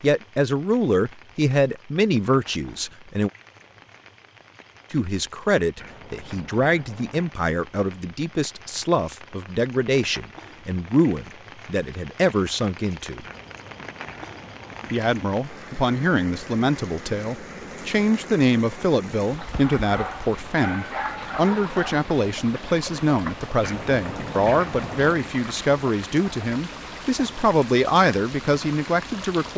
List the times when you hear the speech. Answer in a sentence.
The speech can be heard from 0.0 to 3.3 s, from 4.9 to 13.2 s and from 14.9 to 29.5 s.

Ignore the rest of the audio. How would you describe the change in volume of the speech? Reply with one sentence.
The volume of the speech stays about the same.